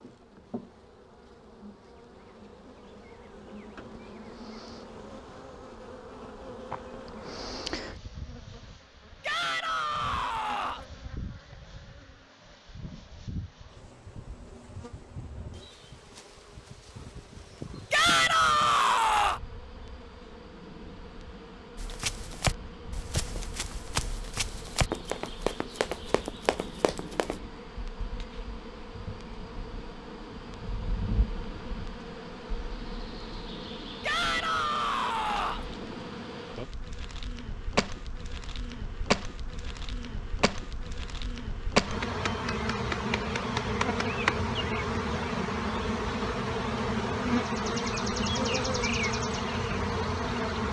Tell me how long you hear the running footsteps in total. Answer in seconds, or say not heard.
6 s.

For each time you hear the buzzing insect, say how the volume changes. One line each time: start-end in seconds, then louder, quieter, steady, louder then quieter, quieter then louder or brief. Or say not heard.
0.0-50.6 louder.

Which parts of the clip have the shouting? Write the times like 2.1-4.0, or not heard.
9.2-10.8, 17.9-19.4, 34.0-35.6.